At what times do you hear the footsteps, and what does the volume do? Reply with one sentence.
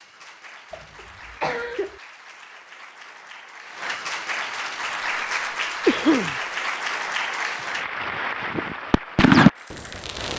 The footsteps can't be heard in this clip.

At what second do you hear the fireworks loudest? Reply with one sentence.
The loudest moment of the fireworks is at 9 seconds.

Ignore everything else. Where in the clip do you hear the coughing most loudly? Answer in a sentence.
The loudest moment of the coughing is at 6 seconds.